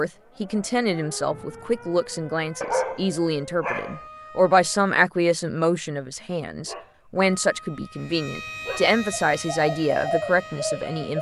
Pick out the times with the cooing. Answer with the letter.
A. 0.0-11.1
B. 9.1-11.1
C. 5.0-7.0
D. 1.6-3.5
B.